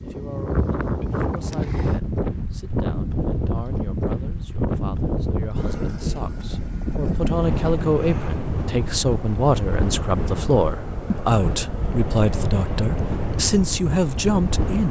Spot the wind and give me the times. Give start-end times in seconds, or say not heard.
0.0-14.8.